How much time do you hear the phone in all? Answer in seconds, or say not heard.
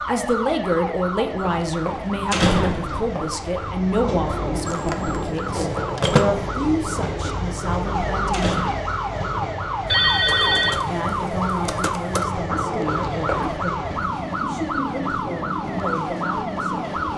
4 s.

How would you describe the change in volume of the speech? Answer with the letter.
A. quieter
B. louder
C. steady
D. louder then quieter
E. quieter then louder
A.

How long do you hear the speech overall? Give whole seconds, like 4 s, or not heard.
15 s.